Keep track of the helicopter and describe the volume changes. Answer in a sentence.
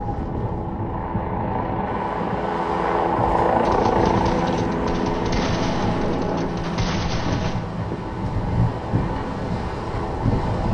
The volume of the helicopter goes up, then down.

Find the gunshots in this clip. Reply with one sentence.
You can hear the gunshots from 3.6 to 7.7 s.